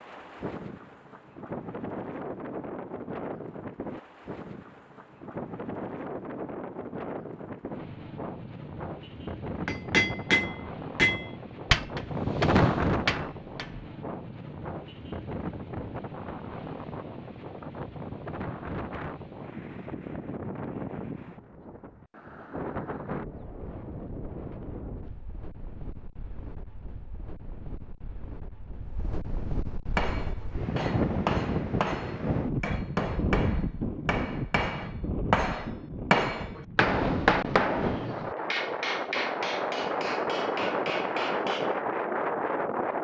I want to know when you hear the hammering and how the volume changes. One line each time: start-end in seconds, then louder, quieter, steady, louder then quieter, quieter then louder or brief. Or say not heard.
9.7-13.8 quieter then louder
29.9-41.8 louder then quieter.